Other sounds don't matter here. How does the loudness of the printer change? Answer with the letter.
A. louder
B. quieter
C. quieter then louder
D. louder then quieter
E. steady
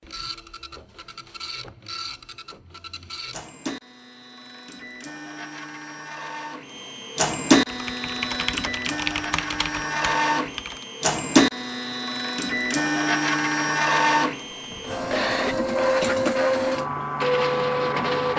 A.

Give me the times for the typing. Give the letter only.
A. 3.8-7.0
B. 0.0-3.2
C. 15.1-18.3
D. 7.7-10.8
D.